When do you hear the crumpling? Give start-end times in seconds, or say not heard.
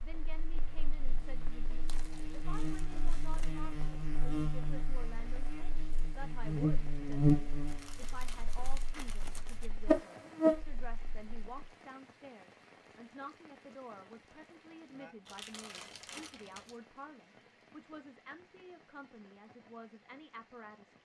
1.9-3.6, 7.7-9.7, 15.2-16.9.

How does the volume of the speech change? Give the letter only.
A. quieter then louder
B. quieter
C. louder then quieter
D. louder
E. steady
E.